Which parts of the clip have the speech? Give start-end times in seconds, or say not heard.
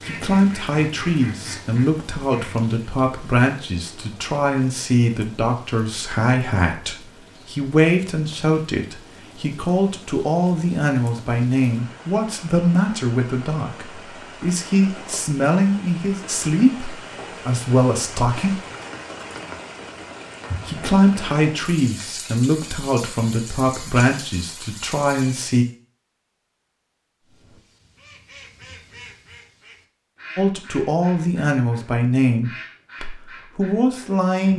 0.1-18.6, 20.6-25.6, 30.4-34.5.